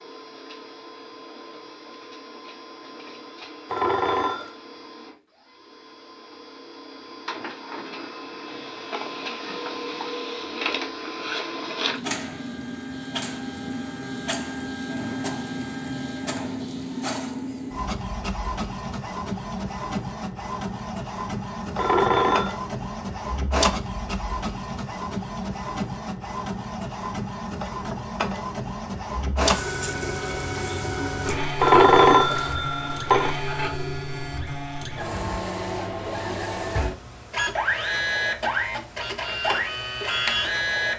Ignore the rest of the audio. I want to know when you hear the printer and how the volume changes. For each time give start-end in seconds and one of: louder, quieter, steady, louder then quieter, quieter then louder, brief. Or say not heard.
0.0-40.9 louder.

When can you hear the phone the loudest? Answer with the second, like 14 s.
32 s.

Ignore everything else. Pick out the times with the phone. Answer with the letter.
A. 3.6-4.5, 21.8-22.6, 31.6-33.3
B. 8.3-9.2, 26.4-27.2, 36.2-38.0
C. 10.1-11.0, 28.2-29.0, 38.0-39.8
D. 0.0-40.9
A.